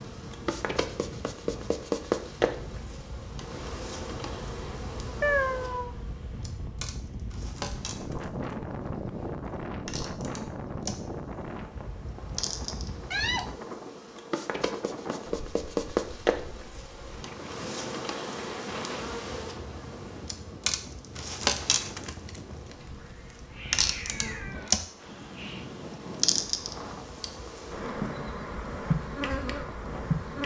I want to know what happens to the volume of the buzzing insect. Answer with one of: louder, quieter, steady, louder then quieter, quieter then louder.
quieter then louder.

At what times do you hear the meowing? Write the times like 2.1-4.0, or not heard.
5.2-6.0, 13.1-13.5, 22.9-25.7.